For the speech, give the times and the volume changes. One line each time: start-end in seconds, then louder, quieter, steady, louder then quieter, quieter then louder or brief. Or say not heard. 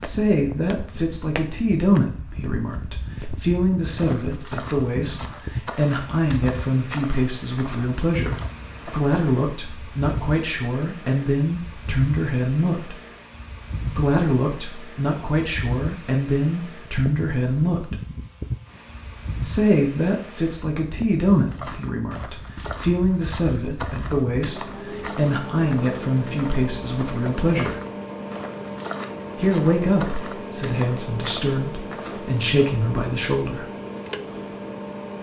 0.0-12.9 steady
13.8-18.0 steady
19.4-27.8 steady
29.4-33.6 steady.